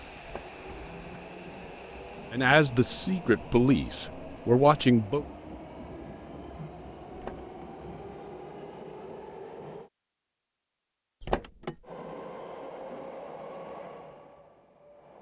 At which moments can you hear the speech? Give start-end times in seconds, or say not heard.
2.3-5.2.